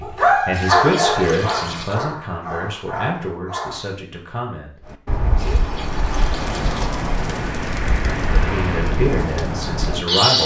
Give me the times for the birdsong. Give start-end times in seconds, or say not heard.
4.8-10.4.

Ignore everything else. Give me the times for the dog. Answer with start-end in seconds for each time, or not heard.
0.0-4.0.